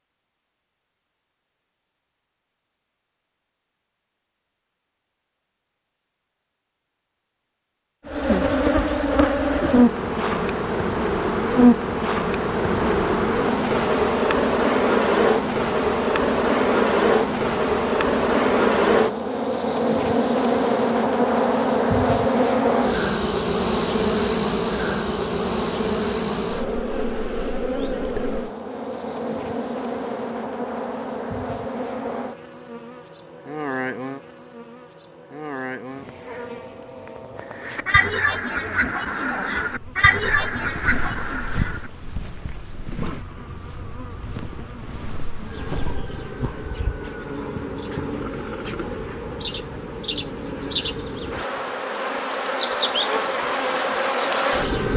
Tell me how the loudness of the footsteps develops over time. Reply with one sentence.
The volume of the footsteps goes down, then up.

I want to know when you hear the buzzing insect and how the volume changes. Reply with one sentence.
The buzzing insect can be heard from 8.1 to 54.9 s, getting quieter then louder.